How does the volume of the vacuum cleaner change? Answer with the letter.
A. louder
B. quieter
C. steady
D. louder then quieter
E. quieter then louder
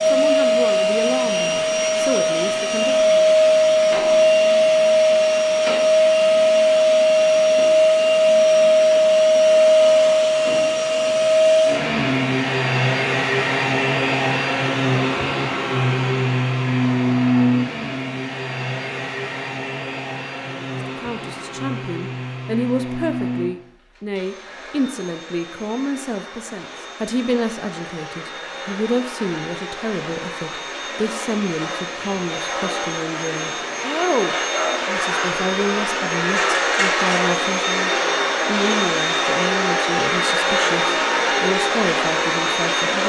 E.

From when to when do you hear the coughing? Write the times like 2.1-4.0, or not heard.
not heard.